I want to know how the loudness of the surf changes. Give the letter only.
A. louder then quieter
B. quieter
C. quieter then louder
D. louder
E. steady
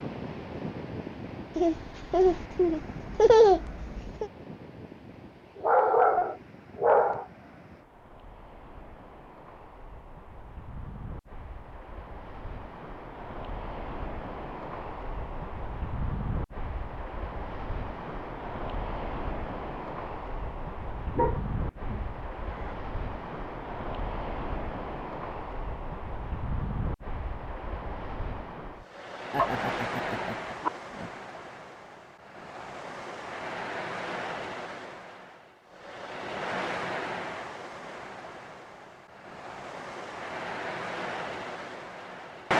D.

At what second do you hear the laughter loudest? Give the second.
3 s.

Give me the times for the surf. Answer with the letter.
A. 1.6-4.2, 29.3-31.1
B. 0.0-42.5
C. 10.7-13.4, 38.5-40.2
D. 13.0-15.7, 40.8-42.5
B.